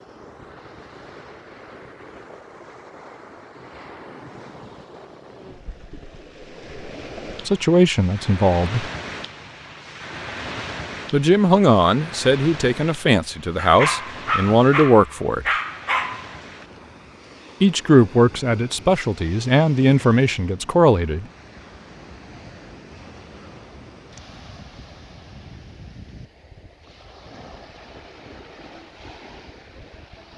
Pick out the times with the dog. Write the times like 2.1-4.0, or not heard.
13.6-16.4.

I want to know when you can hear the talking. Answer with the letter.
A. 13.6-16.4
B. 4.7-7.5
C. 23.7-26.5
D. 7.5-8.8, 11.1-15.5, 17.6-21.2
D.